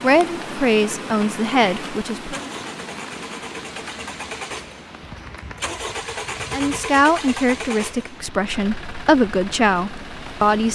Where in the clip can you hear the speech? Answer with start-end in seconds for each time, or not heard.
0.0-2.4, 6.5-10.7.